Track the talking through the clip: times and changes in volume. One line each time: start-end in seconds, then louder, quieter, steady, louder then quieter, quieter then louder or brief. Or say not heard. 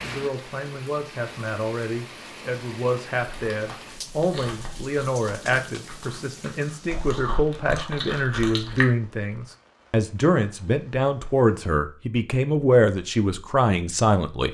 0.0-14.4 louder.